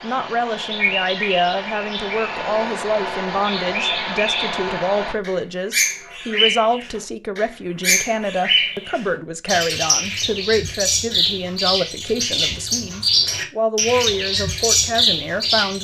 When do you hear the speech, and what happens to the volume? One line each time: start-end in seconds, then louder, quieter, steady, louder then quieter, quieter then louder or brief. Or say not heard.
0.0-15.7 steady.